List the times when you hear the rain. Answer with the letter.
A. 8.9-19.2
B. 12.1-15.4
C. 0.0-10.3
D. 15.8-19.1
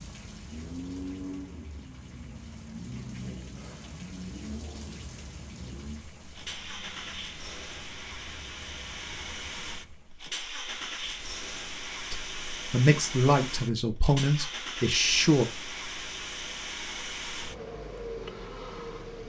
C.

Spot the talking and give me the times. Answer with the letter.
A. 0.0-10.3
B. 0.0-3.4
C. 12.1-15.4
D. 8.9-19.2
C.